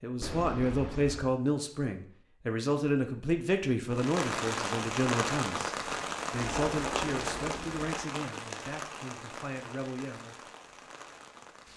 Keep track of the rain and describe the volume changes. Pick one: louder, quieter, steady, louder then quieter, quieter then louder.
quieter.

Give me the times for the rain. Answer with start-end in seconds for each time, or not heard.
3.9-11.7.